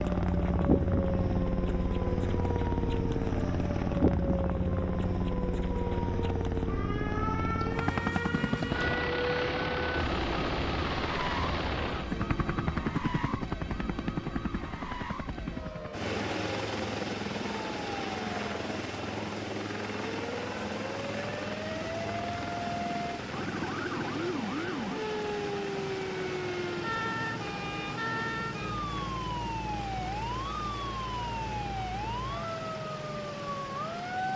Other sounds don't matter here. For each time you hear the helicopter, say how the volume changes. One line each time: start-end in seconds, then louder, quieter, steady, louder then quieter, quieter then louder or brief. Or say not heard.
0.0-34.3 quieter.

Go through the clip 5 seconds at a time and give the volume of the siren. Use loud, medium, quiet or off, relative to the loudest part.
loud, loud, medium, medium, loud, loud, loud.